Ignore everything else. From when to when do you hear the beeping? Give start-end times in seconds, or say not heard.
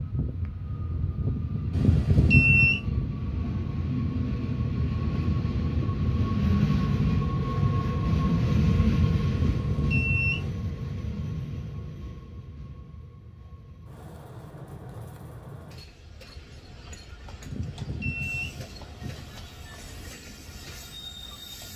1.7-2.8, 9.3-10.5, 17.4-19.2.